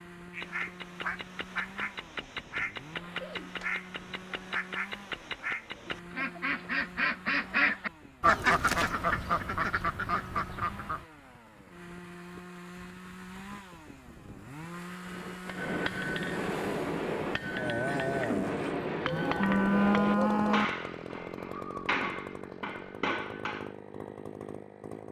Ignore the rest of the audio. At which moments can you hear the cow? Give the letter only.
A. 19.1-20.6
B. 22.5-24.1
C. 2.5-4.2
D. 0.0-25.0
A.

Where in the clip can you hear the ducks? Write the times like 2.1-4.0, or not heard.
0.3-11.1.